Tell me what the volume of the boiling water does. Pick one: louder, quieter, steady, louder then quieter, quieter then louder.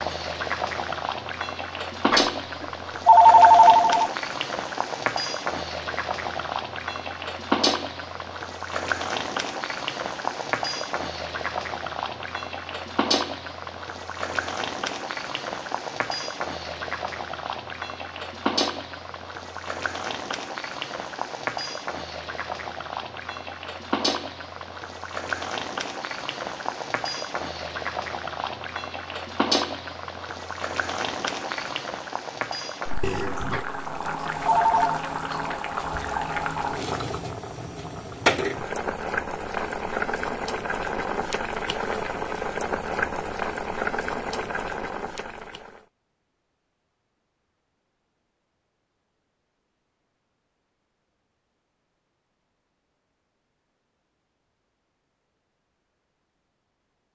steady.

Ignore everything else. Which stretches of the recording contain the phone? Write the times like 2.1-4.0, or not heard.
2.1-4.1, 33.5-35.0.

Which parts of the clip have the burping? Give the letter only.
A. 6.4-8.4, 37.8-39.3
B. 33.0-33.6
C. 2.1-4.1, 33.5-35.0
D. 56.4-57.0
B.